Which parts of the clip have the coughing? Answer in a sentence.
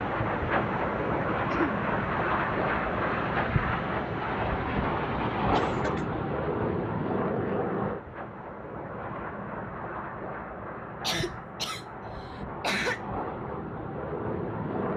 You can hear the coughing from 1.3 to 1.8 s, from 5.5 to 6.0 s and from 11.0 to 13.0 s.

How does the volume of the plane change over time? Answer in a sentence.
The volume of the plane goes down.